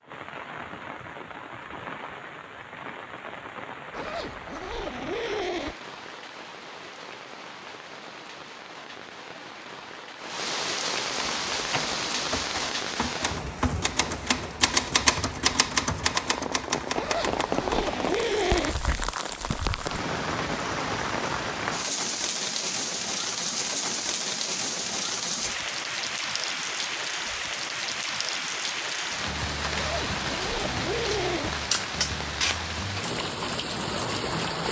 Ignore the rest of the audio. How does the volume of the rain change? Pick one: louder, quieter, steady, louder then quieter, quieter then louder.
louder.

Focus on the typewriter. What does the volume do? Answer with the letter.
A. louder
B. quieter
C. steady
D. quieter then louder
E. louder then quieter
E.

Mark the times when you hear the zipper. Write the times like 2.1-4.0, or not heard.
3.9-5.8, 16.9-18.8, 29.7-31.6.